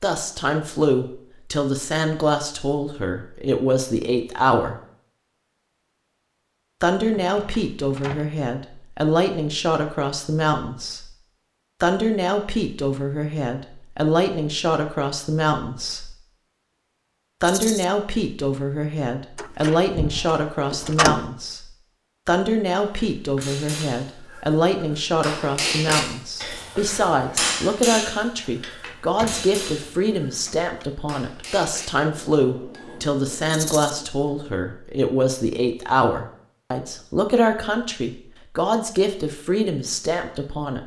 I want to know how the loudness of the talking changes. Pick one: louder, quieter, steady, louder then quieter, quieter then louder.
steady.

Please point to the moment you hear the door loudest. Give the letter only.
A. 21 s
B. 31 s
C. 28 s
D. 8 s
A.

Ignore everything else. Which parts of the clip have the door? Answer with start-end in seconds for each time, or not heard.
7.0-8.2, 19.4-21.2, 28.9-30.9.